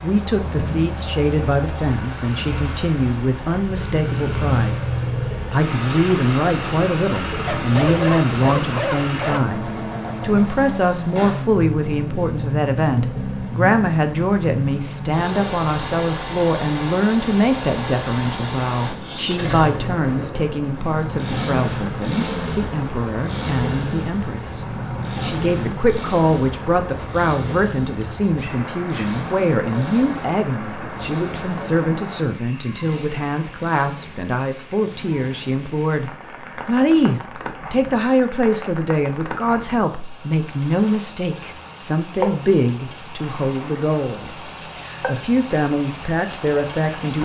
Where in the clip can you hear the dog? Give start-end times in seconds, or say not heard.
7.5-9.4, 28.2-29.1.